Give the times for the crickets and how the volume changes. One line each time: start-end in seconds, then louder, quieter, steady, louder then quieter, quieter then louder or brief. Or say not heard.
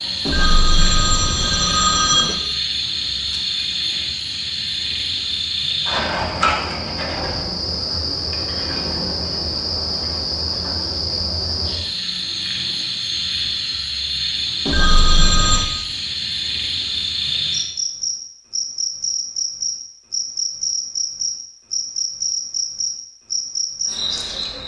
0.0-24.6 steady.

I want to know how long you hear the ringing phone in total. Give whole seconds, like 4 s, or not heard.
3 s.